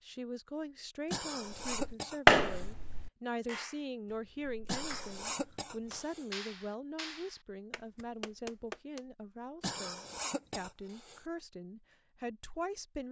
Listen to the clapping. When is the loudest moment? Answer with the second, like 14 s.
2 s.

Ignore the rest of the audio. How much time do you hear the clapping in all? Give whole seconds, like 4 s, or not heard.
7 s.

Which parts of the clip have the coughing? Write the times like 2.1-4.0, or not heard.
1.1-2.7, 4.7-6.2, 9.6-11.2.